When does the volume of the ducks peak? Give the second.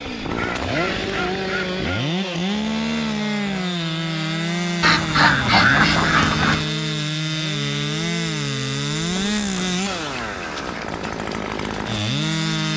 6 s.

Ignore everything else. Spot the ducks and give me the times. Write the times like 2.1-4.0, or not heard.
0.3-2.0, 4.8-6.7, 9.2-11.1.